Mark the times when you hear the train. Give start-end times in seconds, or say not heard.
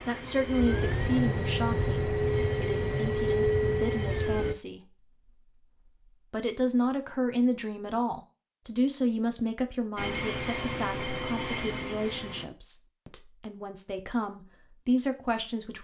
0.0-4.5, 9.9-12.4.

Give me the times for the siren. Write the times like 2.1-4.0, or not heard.
not heard.